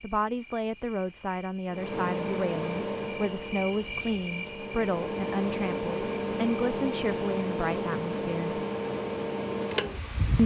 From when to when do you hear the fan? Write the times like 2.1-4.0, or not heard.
1.7-10.4.